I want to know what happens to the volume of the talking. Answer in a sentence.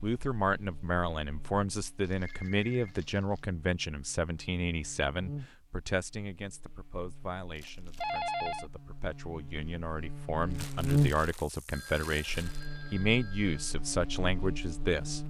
The volume of the talking goes down, then up.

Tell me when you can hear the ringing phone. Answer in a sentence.
You can hear the ringing phone from 2.2 to 3.0 s, from 8.0 to 8.7 s and from 11.7 to 13.8 s.